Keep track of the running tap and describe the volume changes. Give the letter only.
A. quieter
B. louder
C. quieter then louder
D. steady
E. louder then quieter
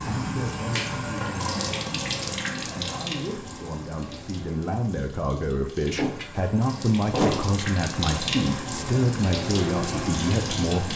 C.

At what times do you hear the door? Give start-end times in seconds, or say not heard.
5.8-7.7.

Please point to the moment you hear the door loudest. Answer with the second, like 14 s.
7 s.